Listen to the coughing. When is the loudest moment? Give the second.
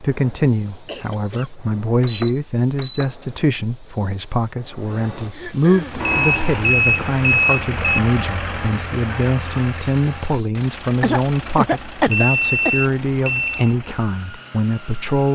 12 s.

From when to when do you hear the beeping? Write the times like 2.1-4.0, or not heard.
2.0-3.1, 6.0-7.8, 12.1-13.8.